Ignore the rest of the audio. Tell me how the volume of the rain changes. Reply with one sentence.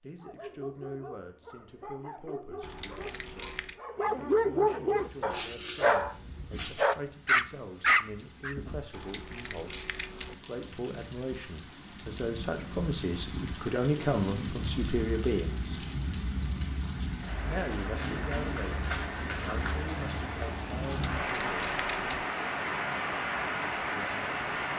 The loudness of the rain goes up.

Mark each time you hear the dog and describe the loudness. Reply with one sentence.
You can hear the dog from 0.2 to 8.6 s, getting louder.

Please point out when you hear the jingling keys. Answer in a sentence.
You can hear the jingling keys from 2.6 to 3.8 s, from 8.9 to 10.3 s and from 20.9 to 22.2 s.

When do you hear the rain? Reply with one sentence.
You can hear the rain from 5.0 to 24.7 s.